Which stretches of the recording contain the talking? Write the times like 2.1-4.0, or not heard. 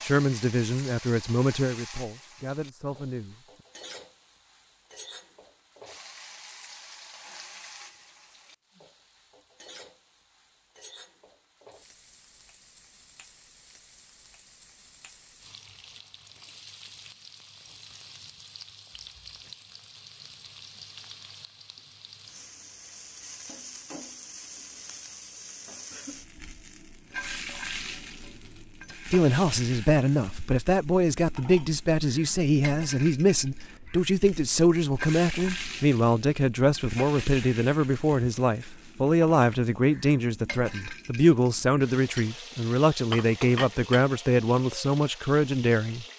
0.0-3.5, 29.1-46.0.